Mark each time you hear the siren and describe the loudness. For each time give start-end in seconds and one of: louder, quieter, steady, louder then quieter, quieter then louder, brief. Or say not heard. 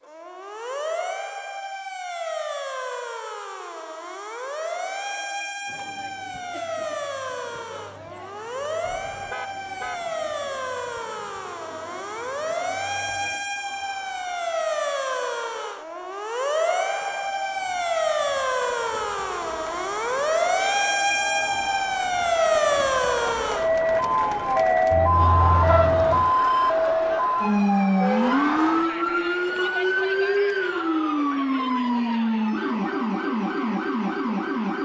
0.0-34.8 louder.